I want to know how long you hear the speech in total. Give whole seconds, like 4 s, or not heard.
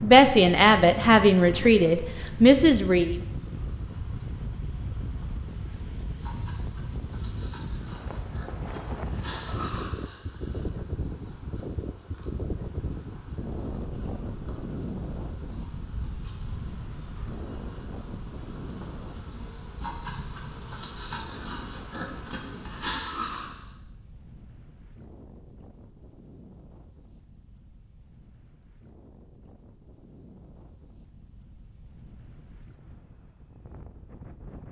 3 s.